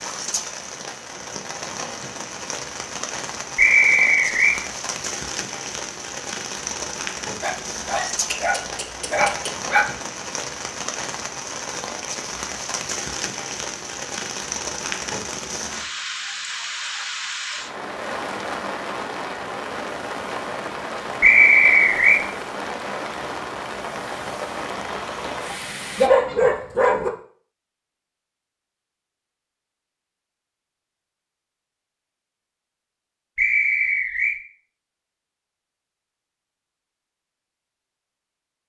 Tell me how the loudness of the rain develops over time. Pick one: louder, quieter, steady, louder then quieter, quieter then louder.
steady.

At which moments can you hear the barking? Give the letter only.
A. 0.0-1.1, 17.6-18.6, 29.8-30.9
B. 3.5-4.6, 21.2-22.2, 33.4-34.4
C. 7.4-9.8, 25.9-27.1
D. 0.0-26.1
C.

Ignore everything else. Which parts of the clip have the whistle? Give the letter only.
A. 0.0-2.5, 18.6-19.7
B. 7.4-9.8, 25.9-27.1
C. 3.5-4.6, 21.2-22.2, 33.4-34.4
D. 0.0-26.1
C.